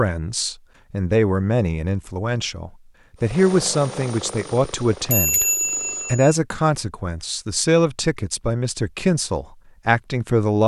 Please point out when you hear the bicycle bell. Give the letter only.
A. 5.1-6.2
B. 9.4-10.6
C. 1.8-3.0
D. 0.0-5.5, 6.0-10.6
A.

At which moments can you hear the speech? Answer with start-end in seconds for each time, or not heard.
0.0-5.5, 6.0-10.6.